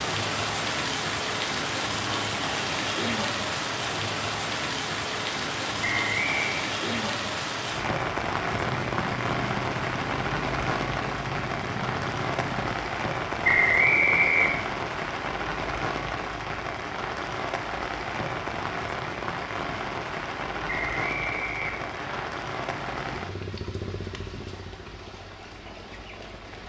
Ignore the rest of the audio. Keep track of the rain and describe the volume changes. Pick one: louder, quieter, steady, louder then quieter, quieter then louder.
quieter.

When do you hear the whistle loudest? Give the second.
14 s.